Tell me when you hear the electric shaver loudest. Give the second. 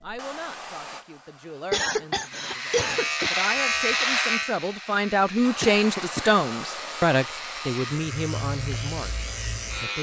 4 s.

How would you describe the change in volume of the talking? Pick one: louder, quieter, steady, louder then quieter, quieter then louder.
louder then quieter.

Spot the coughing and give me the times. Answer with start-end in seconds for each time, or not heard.
1.7-3.3, 5.6-7.0.